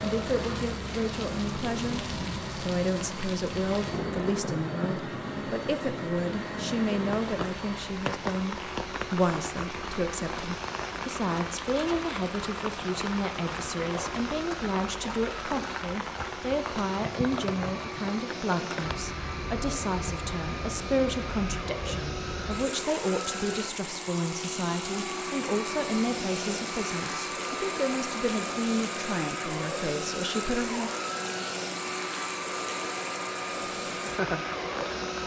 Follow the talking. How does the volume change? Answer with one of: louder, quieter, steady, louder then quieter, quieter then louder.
steady.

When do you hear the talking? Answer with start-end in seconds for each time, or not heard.
0.0-30.9.